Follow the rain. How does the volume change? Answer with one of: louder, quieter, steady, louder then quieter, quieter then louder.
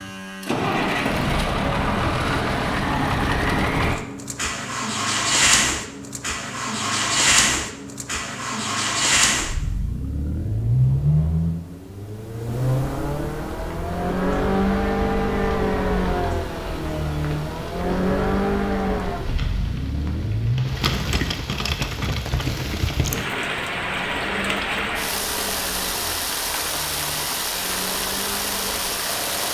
louder.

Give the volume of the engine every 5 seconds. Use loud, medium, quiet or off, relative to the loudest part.
loud, loud, loud, loud, medium, quiet.